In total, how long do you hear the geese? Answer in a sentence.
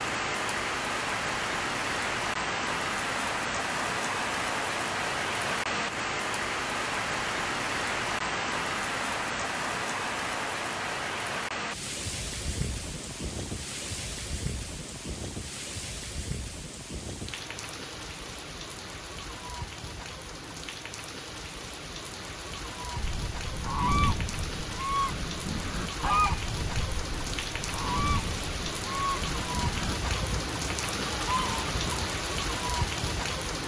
The geese can be heard for 9 seconds in total.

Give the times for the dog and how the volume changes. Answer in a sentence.
The dog can't be heard in this clip.